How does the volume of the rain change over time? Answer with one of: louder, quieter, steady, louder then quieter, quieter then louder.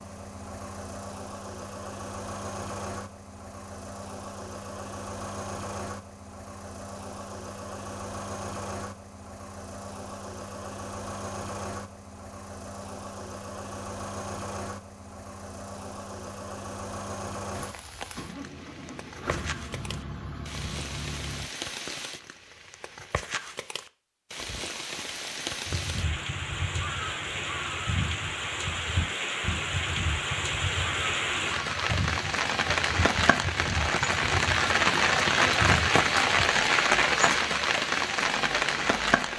louder.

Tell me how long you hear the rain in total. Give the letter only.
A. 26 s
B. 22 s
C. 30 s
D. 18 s
B.